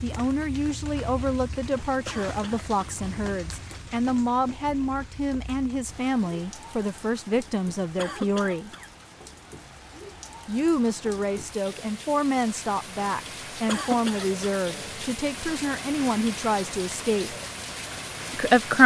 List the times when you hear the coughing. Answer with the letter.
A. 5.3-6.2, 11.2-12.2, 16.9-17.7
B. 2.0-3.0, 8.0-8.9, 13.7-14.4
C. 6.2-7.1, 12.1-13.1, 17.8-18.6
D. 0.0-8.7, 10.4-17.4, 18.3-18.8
B.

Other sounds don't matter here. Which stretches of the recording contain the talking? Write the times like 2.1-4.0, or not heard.
0.0-8.7, 10.4-17.4, 18.3-18.8.